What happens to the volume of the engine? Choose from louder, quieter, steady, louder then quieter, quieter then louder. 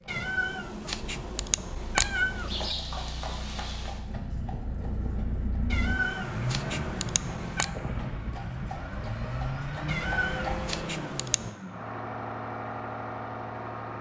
louder.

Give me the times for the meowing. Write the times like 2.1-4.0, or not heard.
0.1-2.8, 5.7-7.7, 9.8-11.6.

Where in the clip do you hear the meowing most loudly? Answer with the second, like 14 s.
2 s.